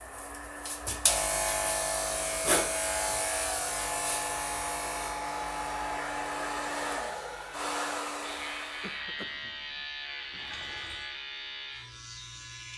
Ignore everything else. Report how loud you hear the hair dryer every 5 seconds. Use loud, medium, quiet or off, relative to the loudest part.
medium, loud, off.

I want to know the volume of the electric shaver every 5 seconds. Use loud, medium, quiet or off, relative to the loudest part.
loud, medium, medium.